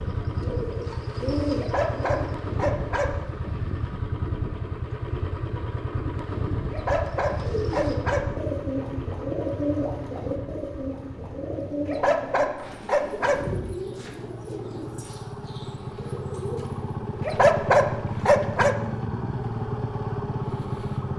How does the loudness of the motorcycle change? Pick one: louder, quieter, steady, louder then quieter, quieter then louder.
quieter then louder.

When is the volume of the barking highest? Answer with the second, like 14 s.
18 s.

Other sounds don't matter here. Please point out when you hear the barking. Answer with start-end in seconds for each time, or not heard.
1.6-3.1, 6.7-8.2, 11.8-13.4, 17.2-18.8.